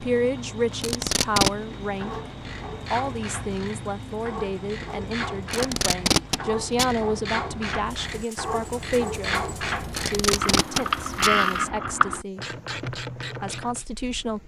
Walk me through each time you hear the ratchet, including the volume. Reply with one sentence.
The ratchet can be heard from 1.8 to 13.8 s, getting louder.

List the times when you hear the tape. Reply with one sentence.
You can hear the tape from 0.8 to 1.5 s, from 5.5 to 7.0 s and from 9.9 to 11.4 s.